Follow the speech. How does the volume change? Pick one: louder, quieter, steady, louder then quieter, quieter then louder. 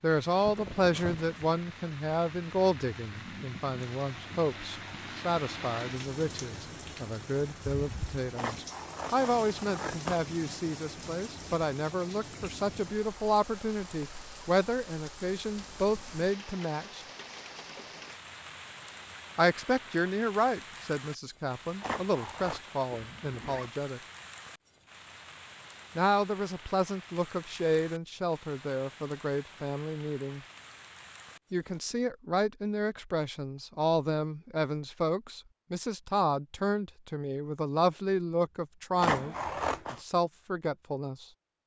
steady.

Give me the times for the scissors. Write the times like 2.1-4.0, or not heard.
8.3-10.2, 21.8-22.7, 39.0-40.0.